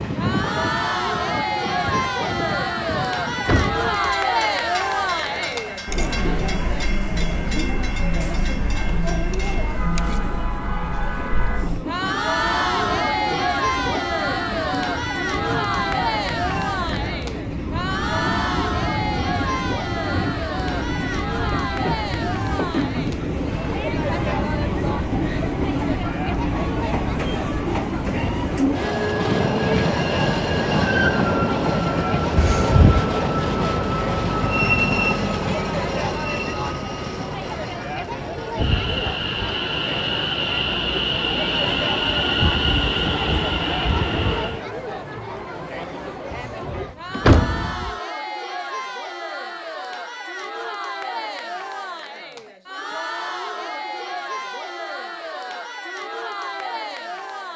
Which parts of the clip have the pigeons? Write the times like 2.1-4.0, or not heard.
not heard.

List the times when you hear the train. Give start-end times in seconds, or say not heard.
0.0-44.6.